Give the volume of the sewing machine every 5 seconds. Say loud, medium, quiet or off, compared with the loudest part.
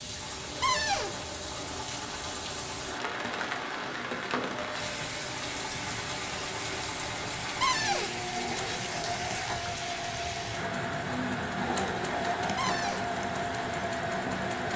medium, loud, loud.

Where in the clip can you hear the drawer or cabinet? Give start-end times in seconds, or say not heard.
0.6-1.1, 7.6-8.1, 12.6-13.1.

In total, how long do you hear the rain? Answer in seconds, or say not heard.
15 s.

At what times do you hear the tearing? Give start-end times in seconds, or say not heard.
not heard.